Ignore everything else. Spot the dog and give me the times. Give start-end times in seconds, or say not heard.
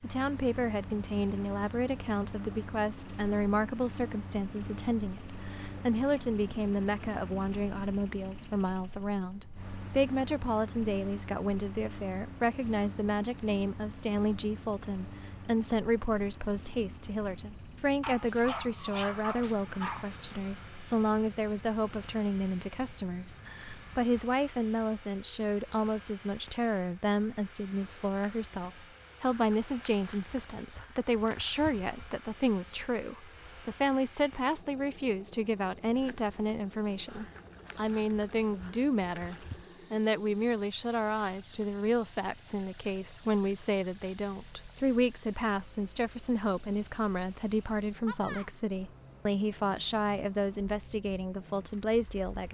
18.0-20.1.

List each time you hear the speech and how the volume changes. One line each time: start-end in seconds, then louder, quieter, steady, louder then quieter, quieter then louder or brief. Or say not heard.
0.0-52.4 steady.